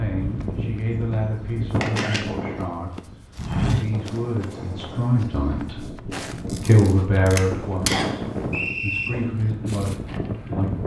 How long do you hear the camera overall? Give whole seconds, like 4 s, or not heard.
2 s.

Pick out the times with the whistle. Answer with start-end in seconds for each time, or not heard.
7.8-9.1.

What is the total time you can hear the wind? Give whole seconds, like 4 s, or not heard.
11 s.